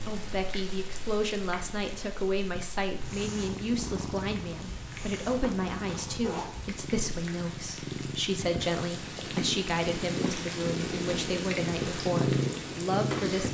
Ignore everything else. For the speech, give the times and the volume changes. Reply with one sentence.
You can hear the speech from 0.1 to 13.4 s, at a steady volume.